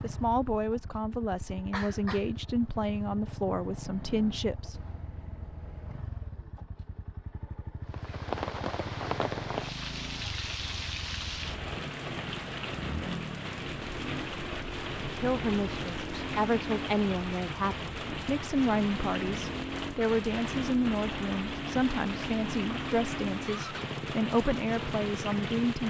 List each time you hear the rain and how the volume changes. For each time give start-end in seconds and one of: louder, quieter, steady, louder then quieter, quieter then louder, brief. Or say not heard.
7.8-25.8 steady.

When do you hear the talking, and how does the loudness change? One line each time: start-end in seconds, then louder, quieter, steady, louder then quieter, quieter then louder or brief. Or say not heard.
0.0-4.8 steady
15.1-25.8 steady.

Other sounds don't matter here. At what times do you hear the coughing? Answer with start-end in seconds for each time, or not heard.
1.7-2.3.